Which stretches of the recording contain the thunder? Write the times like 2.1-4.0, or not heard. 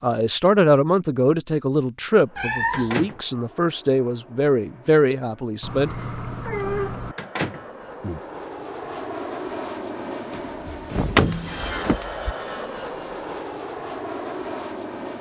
not heard.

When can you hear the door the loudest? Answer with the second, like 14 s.
11 s.